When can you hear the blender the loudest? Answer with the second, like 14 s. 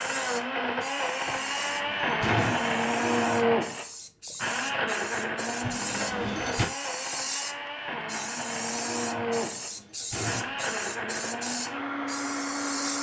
3 s.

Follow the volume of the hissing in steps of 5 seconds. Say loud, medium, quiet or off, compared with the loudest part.
medium, loud, loud.